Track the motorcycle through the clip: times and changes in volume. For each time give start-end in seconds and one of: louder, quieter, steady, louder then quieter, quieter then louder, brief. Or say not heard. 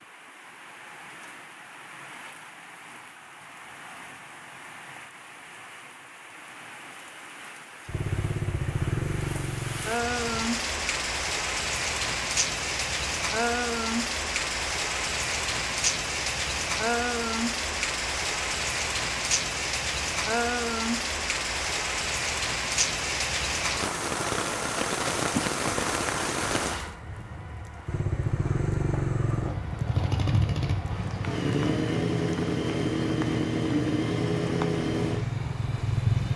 7.8-10.4 brief
27.9-36.3 steady.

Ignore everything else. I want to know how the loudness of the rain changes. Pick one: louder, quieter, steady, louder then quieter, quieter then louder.
louder then quieter.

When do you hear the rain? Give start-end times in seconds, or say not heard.
0.0-36.3.